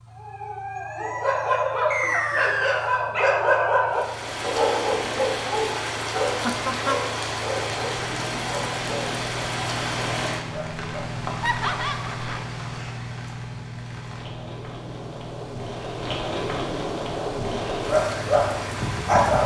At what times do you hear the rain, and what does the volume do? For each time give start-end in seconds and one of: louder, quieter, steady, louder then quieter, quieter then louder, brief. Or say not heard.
3.9-19.4 quieter then louder.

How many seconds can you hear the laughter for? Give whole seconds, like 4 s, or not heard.
2 s.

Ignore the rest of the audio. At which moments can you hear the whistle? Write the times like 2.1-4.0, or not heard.
1.9-3.0.